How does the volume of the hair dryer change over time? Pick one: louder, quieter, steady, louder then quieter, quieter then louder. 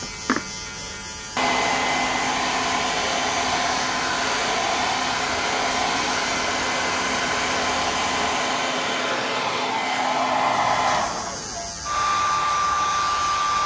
steady.